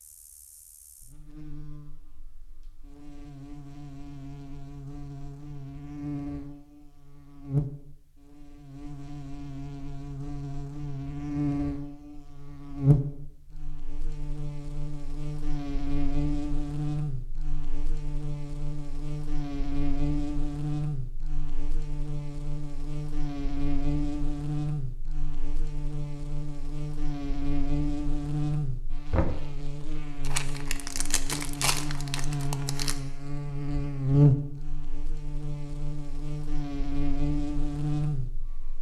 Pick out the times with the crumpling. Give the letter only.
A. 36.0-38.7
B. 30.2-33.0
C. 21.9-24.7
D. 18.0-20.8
B.